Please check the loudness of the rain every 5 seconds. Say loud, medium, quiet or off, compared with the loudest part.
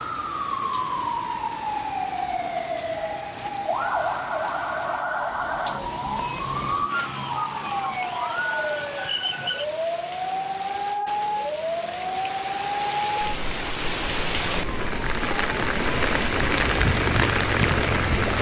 quiet, quiet, medium, loud.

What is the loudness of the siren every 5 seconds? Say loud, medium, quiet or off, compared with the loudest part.
loud, loud, loud, medium.